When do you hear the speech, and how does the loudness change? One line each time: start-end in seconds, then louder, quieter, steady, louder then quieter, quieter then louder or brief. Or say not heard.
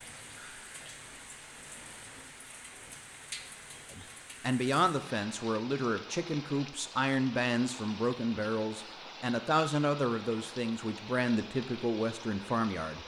3.9-13.0 steady.